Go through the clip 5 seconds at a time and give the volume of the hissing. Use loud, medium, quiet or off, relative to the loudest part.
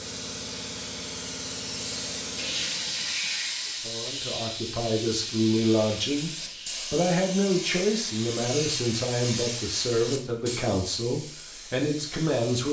loud, loud, medium.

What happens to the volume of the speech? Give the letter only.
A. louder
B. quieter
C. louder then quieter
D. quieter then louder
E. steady
E.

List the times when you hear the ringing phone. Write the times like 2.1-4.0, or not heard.
not heard.